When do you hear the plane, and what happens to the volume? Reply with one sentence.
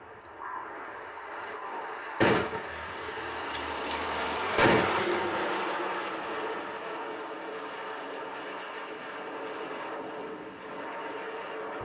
The plane can be heard from 0.0 to 11.8 s, getting louder then quieter.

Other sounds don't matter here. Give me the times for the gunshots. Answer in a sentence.
The gunshots can be heard from 2.2 to 5.3 s.